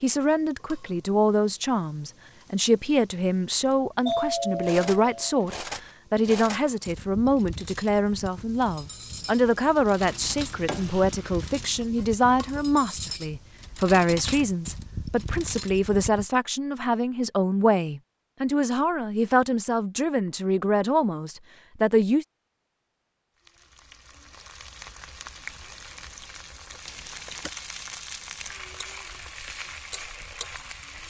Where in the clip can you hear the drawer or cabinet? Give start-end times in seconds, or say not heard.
not heard.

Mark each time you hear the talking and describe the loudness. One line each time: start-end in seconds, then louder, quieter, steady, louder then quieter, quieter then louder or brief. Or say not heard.
0.0-22.2 steady.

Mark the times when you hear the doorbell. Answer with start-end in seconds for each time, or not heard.
4.0-5.3, 26.9-27.5.